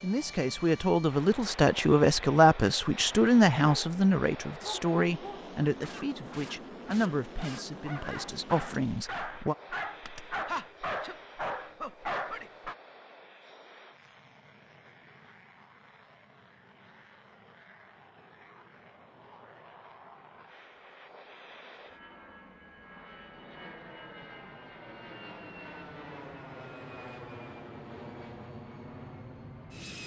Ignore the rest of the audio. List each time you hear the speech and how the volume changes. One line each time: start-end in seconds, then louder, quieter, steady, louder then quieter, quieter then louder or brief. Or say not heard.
0.0-9.6 quieter.